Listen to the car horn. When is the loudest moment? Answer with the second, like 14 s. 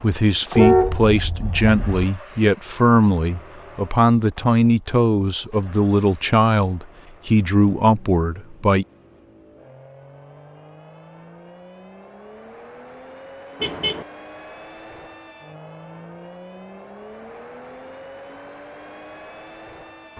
1 s.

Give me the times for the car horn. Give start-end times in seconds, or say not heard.
0.6-1.8, 13.6-14.1.